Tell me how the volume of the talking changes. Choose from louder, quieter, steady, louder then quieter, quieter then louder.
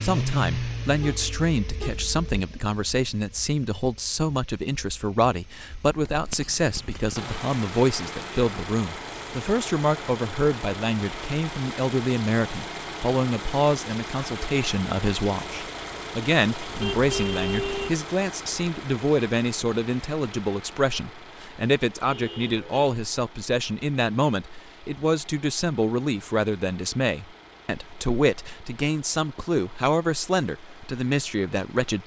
steady.